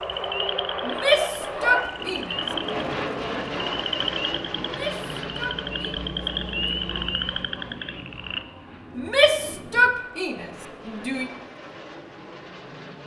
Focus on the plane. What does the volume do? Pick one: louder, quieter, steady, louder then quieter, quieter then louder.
quieter.